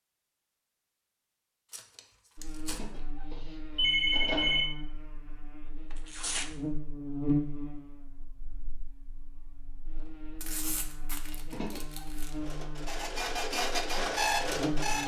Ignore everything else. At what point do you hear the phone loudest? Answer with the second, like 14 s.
4 s.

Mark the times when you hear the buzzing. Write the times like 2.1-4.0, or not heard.
2.4-15.0.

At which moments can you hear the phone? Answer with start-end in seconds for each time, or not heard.
2.7-4.7, 11.5-12.1.